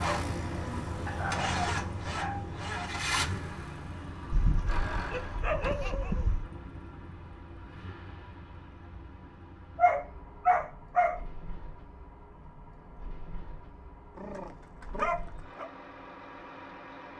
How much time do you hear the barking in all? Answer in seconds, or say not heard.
7 s.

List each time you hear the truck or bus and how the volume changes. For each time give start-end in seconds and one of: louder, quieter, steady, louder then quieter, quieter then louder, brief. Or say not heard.
0.0-17.1 quieter.